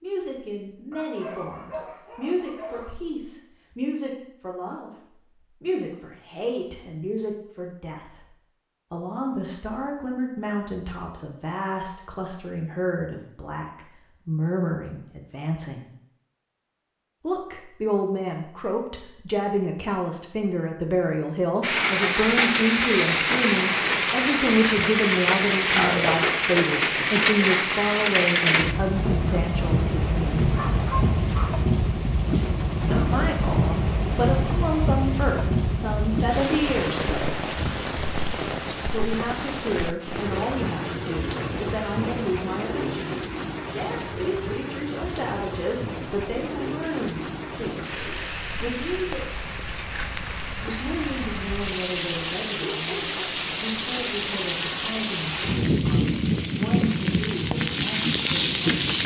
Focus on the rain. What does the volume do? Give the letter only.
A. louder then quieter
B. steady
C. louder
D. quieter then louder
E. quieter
D.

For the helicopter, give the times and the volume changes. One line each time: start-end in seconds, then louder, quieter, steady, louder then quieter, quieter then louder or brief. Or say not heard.
not heard.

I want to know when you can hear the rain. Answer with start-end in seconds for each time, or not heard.
21.6-59.0.